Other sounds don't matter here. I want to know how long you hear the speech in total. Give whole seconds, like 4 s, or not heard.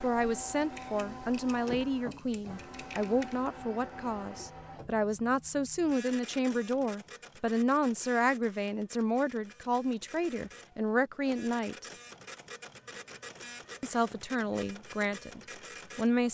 14 s.